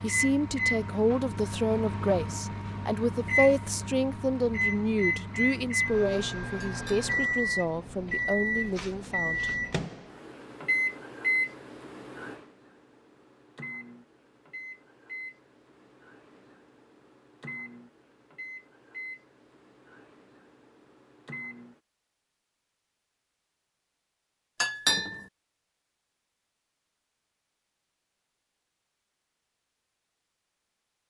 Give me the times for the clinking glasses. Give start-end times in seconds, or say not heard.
6.6-7.1, 24.6-25.2.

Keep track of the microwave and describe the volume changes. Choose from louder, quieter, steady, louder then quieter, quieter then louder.
quieter.